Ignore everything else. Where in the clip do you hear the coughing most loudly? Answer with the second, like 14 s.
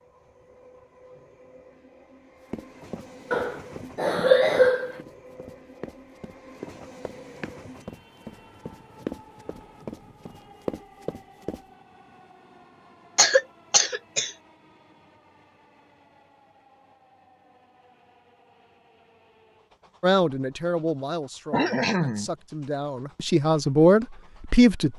4 s.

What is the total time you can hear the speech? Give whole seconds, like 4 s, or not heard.
5 s.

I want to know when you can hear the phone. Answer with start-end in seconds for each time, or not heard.
not heard.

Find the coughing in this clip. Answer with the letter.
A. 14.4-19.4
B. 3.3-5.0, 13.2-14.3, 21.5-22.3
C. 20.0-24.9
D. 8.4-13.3
B.